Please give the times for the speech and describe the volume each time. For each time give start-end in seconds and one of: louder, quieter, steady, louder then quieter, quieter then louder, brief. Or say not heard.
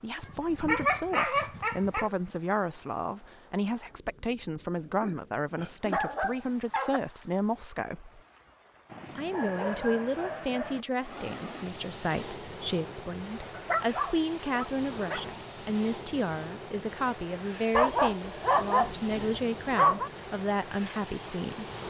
0.0-8.2 steady
9.2-21.6 steady.